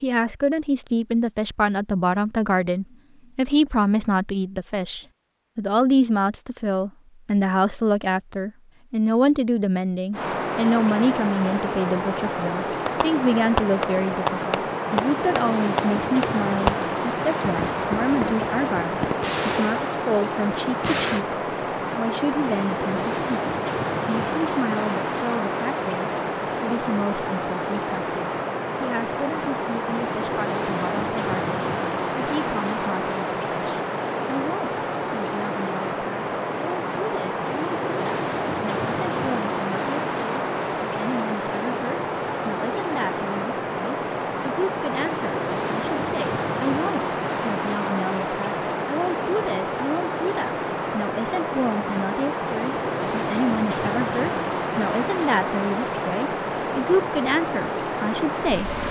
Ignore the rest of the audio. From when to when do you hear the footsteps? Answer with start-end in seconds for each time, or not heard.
not heard.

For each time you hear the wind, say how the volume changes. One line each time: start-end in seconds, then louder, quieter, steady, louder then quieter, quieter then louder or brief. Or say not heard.
10.1-58.8 steady.